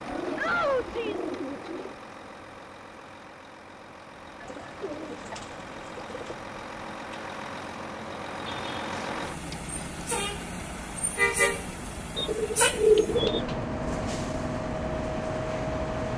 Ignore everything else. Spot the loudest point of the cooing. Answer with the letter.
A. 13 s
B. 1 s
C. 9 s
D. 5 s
A.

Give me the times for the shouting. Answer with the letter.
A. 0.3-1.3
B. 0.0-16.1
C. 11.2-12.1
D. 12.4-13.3
A.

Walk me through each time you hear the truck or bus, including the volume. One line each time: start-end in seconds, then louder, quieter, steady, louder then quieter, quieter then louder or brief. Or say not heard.
0.0-16.1 louder.